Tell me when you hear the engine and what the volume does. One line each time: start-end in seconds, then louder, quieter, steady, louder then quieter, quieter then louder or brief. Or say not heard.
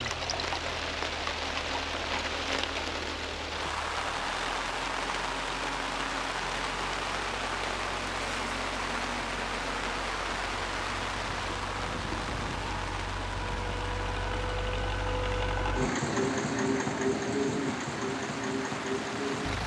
0.0-19.6 louder.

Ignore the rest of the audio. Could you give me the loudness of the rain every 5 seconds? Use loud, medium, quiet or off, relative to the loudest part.
loud, loud, loud, medium.